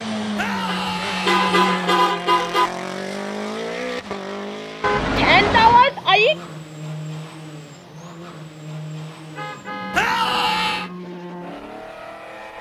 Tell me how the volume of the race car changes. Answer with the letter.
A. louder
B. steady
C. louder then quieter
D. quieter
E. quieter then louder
D.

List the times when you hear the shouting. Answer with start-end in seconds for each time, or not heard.
0.3-2.0, 5.2-6.3, 9.9-10.9.